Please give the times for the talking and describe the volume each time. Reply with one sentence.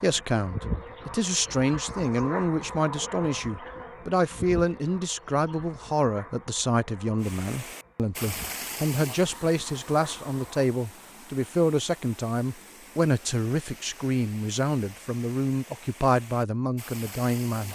The talking can be heard from 0.0 to 17.7 s, at a steady volume.